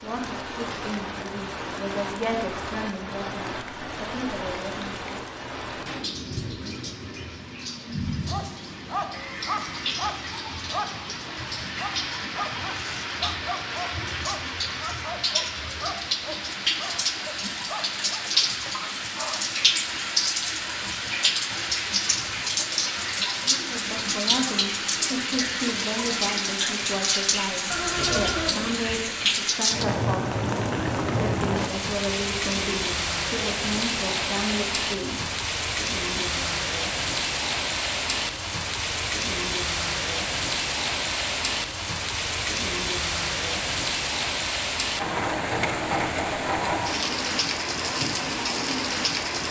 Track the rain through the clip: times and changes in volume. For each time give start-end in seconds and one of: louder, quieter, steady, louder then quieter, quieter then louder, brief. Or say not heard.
0.0-49.4 louder.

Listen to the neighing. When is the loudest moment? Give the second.
28 s.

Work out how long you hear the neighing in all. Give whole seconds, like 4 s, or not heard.
2 s.